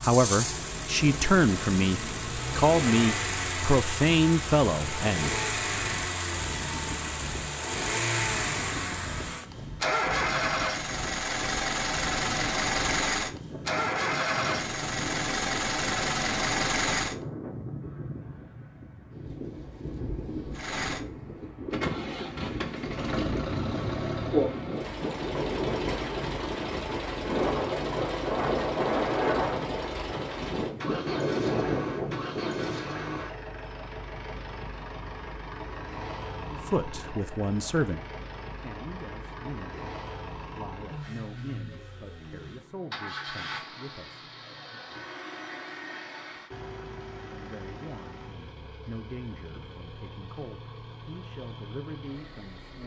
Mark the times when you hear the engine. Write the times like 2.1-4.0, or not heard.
0.0-17.1, 20.5-52.8.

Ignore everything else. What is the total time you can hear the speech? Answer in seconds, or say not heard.
19 s.